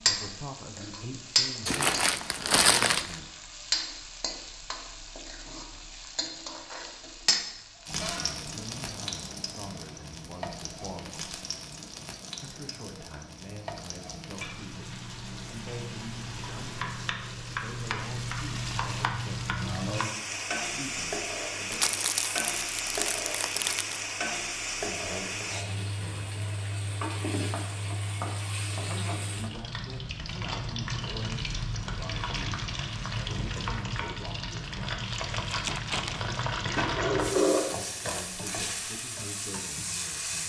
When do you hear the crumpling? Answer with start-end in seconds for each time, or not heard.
1.6-3.1, 21.7-24.1, 35.3-36.4.